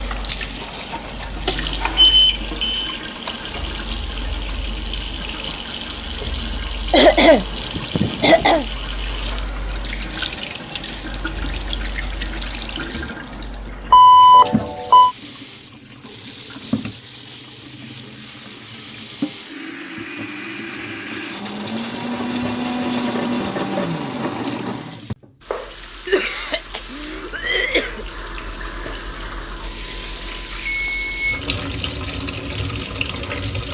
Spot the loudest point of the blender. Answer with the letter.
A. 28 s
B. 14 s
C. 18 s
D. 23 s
D.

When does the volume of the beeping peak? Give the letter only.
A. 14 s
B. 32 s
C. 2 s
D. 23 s
A.